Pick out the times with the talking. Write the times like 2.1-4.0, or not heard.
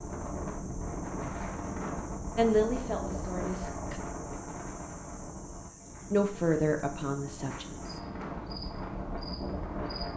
2.4-4.0, 6.1-7.7.